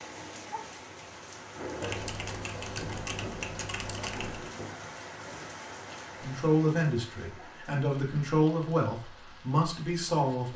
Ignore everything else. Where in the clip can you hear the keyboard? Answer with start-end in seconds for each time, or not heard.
1.8-4.5.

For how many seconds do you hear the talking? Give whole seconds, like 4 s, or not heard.
4 s.